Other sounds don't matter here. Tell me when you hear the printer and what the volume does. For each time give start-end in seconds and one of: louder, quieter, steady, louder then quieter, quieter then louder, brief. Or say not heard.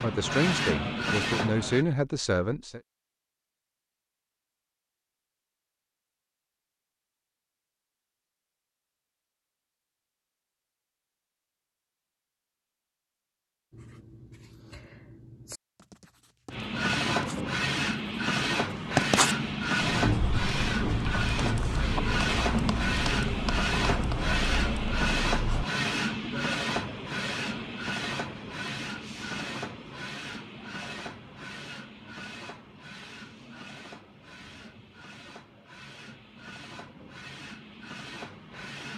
0.0-1.9 brief
16.5-38.9 quieter.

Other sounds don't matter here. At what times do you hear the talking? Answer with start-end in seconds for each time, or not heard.
0.0-2.8.